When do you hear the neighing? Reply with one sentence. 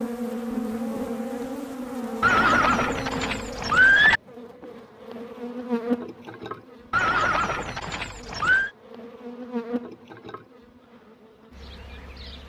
The neighing can be heard from 2.2 to 4.2 s and from 6.9 to 8.7 s.